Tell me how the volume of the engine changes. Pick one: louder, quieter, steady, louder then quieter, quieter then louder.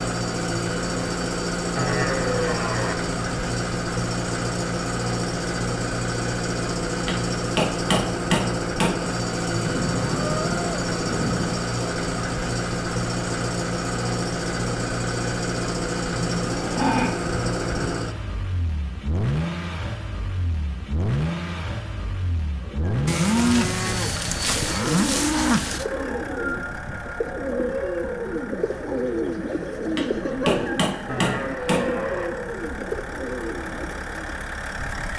quieter.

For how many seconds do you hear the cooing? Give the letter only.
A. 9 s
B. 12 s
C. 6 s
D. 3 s
B.